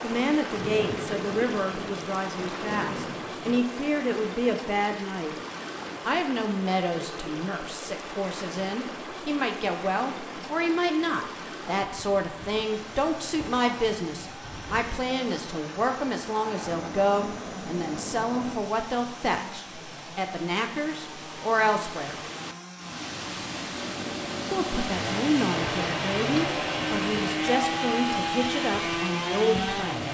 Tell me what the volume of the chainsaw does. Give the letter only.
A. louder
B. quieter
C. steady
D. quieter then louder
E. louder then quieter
A.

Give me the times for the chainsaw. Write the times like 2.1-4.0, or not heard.
12.6-30.0.